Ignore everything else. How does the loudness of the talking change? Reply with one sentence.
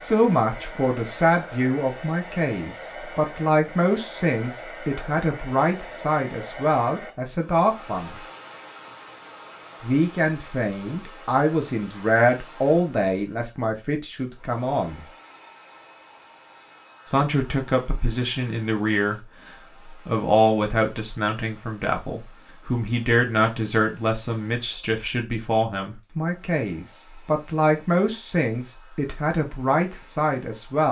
The volume of the talking stays about the same.